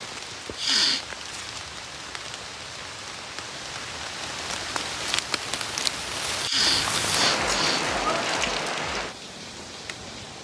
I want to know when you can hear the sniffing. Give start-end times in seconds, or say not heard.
0.6-1.1, 6.4-7.9.